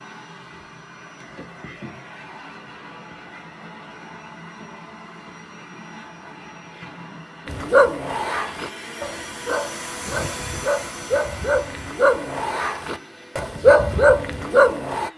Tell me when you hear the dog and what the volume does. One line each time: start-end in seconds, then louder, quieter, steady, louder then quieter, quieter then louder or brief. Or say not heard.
7.5-15.1 louder.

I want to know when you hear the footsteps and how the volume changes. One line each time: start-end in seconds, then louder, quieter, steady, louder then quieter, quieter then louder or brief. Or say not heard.
not heard.